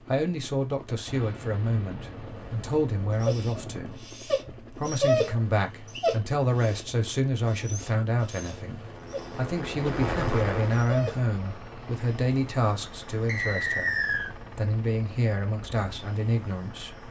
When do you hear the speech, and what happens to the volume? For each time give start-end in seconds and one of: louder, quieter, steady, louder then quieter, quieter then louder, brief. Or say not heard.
0.0-17.0 steady.